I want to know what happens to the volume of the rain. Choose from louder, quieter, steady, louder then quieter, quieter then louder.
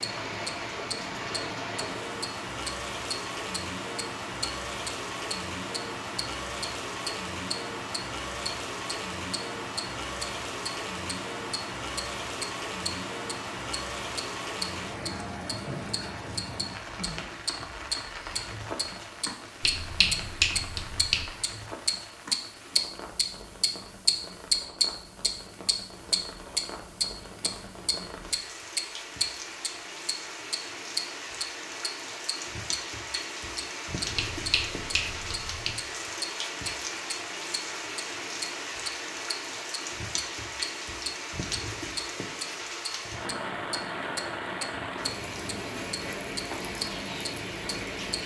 quieter then louder.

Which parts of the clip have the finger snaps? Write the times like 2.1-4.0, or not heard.
19.6-21.2, 34.1-35.7.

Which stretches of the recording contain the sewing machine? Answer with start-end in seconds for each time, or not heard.
not heard.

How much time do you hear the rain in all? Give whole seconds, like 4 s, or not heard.
48 s.